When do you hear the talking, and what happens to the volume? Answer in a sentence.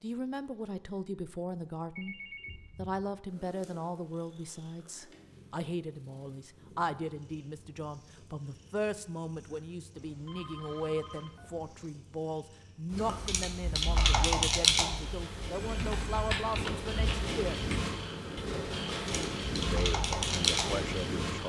You can hear the talking briefly from 0.0 to 2.1 s; from 2.8 to 17.6 s, at a steady volume; and briefly from 19.6 to 21.4 s.